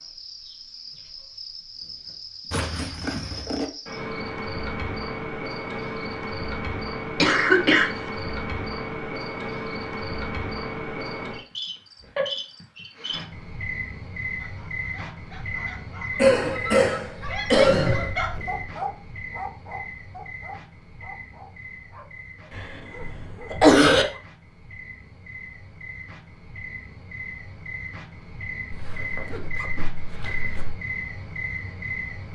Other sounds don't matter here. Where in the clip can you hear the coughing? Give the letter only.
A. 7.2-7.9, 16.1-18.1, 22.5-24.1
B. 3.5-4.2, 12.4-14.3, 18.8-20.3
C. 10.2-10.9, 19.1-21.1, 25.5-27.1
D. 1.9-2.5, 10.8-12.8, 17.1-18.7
A.